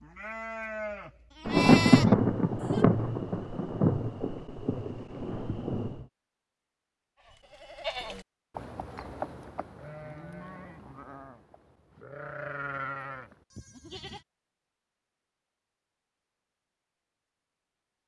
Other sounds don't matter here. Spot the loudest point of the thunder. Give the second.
2 s.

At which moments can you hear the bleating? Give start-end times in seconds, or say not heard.
0.0-2.9, 7.2-14.2.